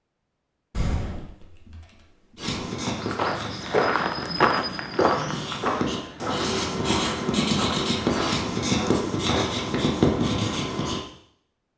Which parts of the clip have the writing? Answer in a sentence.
The writing can be heard from 2.4 to 11.0 s.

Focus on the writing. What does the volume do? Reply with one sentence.
The volume of the writing goes up.